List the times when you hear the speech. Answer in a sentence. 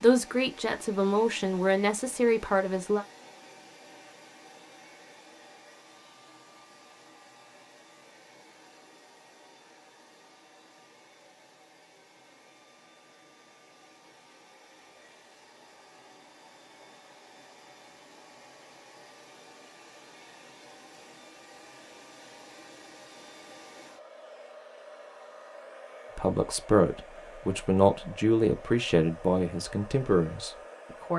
The speech can be heard from 0.0 to 3.0 s and from 26.1 to 31.1 s.